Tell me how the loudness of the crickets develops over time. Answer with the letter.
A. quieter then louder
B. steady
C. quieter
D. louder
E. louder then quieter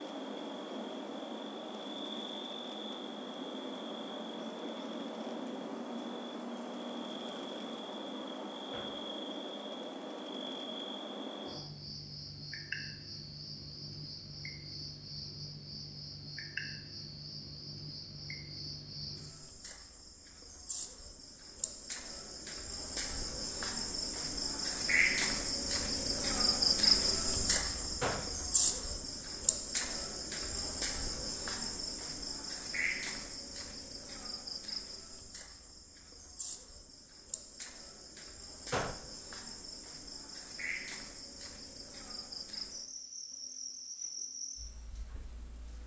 E.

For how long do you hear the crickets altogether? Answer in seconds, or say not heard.
46 s.